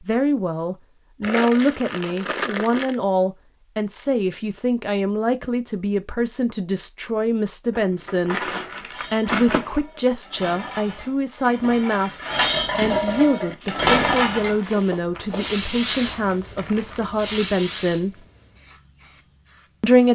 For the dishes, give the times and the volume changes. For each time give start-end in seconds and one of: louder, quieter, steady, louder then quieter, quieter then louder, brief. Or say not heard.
8.9-14.6 louder.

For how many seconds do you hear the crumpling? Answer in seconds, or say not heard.
6 s.